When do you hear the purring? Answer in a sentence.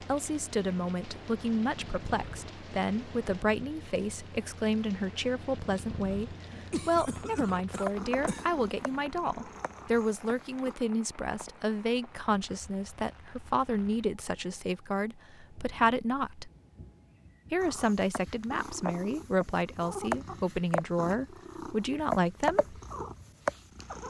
The purring can be heard from 0.0 to 10.8 s and from 17.6 to 24.0 s.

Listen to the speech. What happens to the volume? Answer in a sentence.
The volume of the speech stays about the same.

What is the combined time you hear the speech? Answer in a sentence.
The speech can be heard for 22 seconds in total.